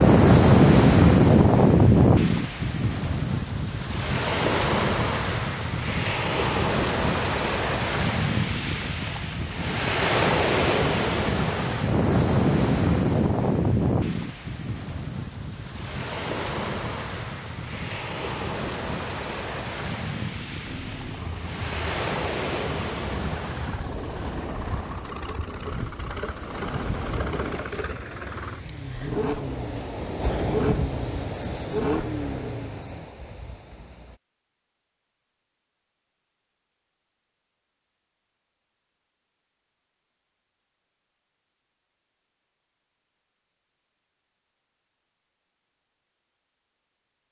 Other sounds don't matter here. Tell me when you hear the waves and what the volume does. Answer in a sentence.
You can hear the waves from 0.0 to 34.2 s, getting quieter.